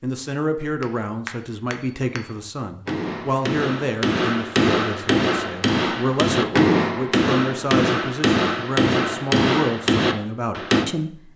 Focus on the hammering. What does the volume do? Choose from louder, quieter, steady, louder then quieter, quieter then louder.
louder.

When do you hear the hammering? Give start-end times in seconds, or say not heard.
0.8-10.8.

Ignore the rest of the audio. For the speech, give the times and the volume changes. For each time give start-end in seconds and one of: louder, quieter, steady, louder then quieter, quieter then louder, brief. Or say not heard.
0.0-11.3 steady.